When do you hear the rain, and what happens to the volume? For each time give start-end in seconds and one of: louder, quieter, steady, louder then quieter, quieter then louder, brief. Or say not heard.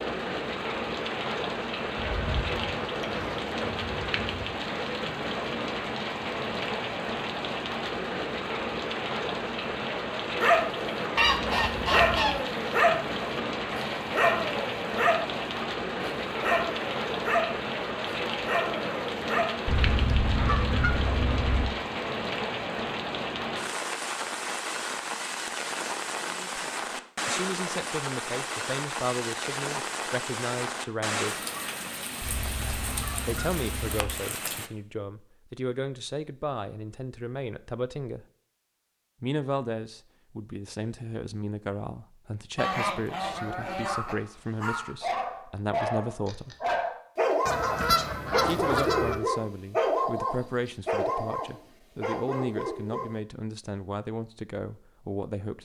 0.0-34.7 steady.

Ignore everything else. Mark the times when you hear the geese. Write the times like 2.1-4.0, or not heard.
1.9-4.5, 11.2-12.4, 19.6-21.7, 32.2-34.1, 42.5-44.1, 47.5-49.2.